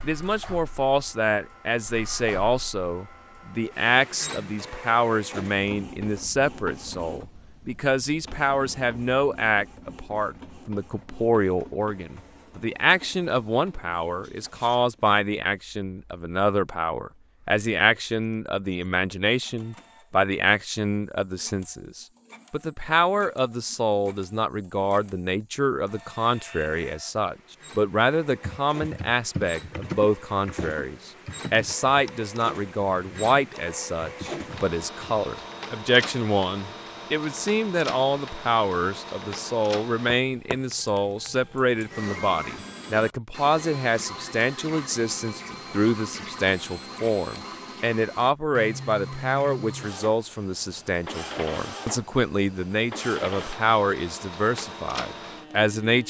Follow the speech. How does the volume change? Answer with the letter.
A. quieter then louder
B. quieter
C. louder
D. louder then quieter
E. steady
E.